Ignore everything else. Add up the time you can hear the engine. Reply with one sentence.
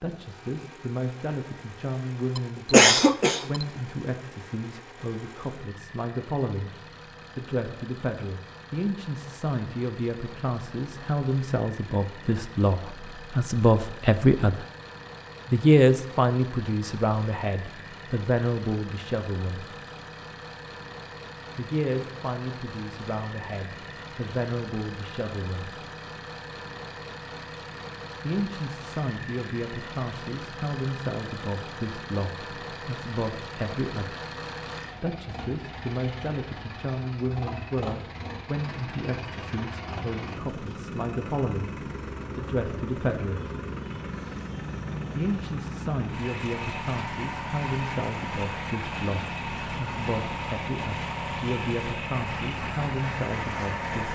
You can hear the engine for 54 seconds altogether.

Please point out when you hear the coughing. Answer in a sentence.
The coughing can be heard from 2.4 to 3.6 s.